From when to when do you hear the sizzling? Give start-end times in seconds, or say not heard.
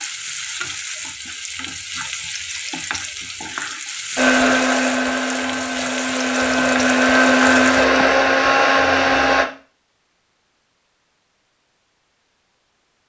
0.0-8.2.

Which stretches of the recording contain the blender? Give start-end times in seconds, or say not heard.
4.2-9.4.